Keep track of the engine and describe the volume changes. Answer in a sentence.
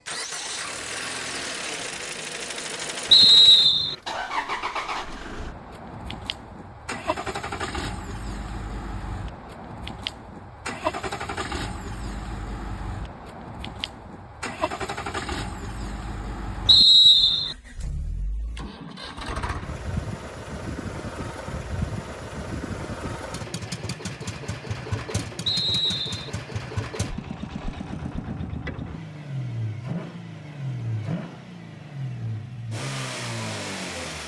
The volume of the engine stays about the same.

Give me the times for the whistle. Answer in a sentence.
The whistle can be heard from 3.1 to 4.0 s, from 16.6 to 17.6 s and from 25.4 to 26.3 s.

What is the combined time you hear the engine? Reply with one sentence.
You can hear the engine for 34 seconds altogether.